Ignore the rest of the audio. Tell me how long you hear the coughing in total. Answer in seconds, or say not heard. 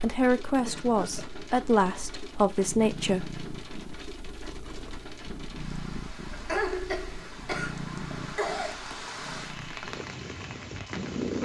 3 s.